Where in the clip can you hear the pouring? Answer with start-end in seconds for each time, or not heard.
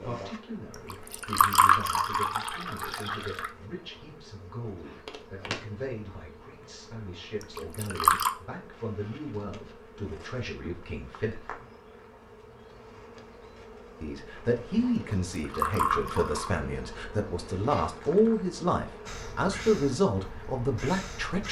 0.9-3.5, 7.5-8.3, 15.3-16.6.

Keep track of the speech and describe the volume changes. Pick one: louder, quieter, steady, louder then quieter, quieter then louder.
louder.